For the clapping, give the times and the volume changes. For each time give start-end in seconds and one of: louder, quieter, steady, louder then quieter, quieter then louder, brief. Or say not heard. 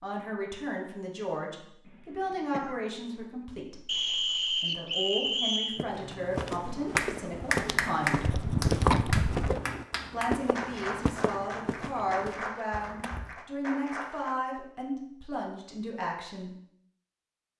7.0-14.3 quieter.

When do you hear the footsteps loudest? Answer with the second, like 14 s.
9 s.